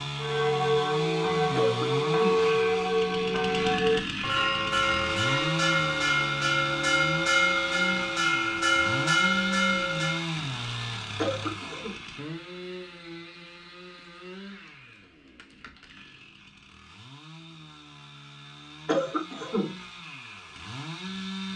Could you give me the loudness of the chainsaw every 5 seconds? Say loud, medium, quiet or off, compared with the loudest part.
loud, loud, medium, quiet, medium.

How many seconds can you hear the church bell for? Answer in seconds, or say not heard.
10 s.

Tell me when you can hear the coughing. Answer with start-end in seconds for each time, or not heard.
1.6-2.4, 11.2-11.9, 18.9-19.8.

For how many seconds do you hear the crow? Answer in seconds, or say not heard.
not heard.